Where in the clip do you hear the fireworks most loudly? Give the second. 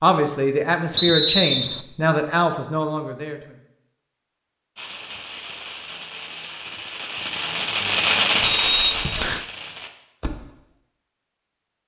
8 s.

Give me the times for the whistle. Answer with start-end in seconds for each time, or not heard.
0.9-1.9, 8.4-9.4.